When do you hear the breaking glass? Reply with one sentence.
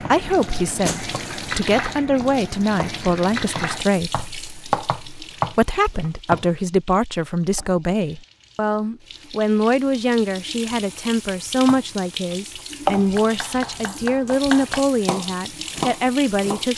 You can hear the breaking glass from 0.8 to 1.6 s.